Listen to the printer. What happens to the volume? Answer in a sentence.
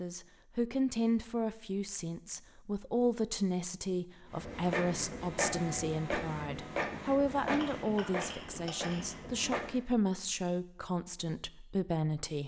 The loudness of the printer goes down.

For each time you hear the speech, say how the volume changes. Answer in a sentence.
You can hear the speech from 0.0 to 12.4 s, at a steady volume.